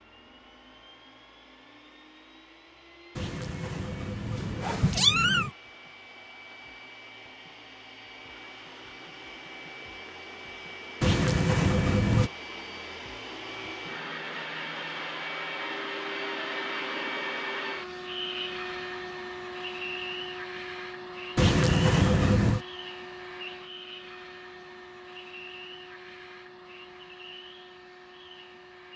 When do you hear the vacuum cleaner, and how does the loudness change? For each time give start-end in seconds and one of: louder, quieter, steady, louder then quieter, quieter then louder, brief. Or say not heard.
0.0-28.9 louder then quieter.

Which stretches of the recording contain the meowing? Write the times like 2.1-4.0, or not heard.
3.1-5.5, 11.0-12.3, 21.4-22.6.